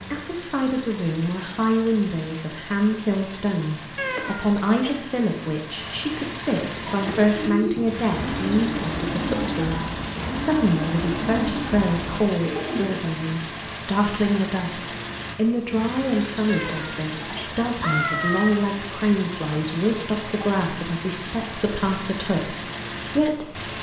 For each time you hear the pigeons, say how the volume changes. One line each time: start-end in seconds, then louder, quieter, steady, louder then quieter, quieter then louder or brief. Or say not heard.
6.8-13.1 steady.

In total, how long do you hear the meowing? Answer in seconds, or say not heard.
3 s.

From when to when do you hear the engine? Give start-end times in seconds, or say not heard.
0.0-23.7.